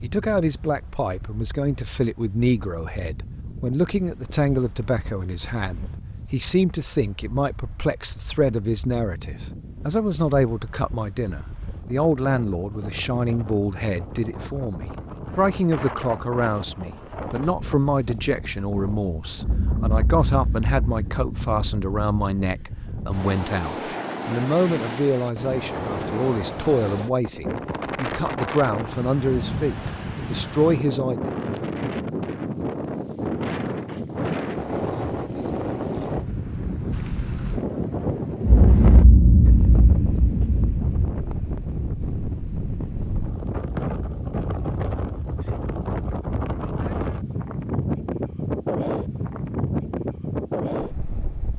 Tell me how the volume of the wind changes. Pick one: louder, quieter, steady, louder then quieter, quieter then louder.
louder.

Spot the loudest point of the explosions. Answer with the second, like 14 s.
39 s.